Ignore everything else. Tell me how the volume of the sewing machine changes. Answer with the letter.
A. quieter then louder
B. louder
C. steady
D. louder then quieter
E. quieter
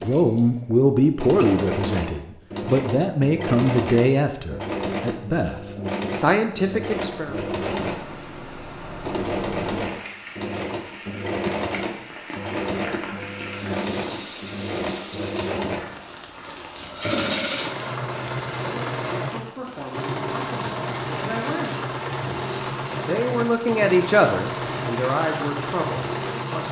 C.